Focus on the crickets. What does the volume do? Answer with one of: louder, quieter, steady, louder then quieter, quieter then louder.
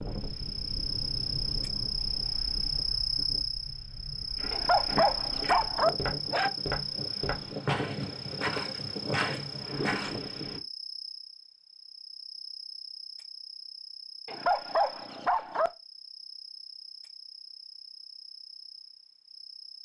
quieter.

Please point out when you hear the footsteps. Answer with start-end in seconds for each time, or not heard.
4.3-10.2.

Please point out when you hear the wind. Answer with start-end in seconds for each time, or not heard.
0.0-10.6.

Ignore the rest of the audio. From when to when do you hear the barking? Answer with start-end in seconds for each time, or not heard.
4.5-6.5, 14.2-15.7.